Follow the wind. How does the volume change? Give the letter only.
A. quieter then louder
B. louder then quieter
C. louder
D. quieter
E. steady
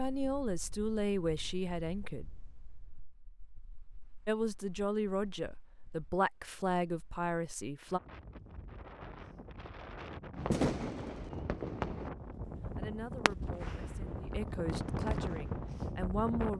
A.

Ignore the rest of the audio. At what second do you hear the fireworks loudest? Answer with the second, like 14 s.
11 s.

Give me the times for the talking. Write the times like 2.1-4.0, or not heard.
0.0-2.2, 4.2-8.0, 12.8-16.5.